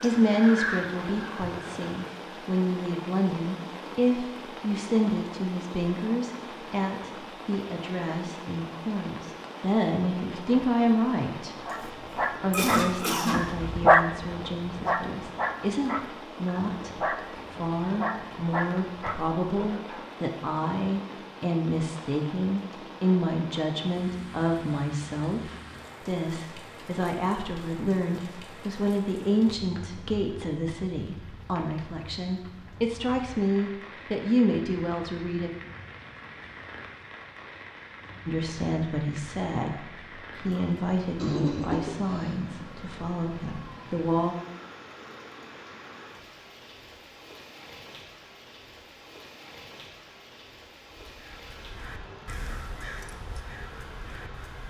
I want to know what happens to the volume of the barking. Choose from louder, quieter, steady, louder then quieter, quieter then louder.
louder then quieter.